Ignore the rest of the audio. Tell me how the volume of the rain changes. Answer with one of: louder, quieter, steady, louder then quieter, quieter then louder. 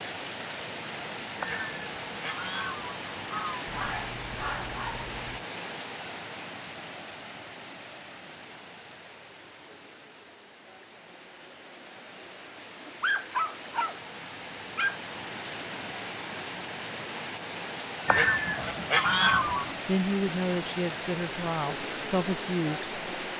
quieter then louder.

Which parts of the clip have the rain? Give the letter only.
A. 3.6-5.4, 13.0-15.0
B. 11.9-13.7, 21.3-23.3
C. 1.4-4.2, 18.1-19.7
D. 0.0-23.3
D.